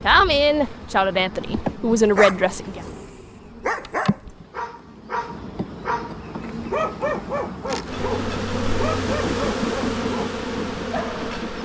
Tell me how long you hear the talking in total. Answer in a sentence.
The talking can be heard for 3 seconds in total.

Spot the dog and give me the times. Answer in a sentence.
The dog can be heard from 2.0 to 11.2 s.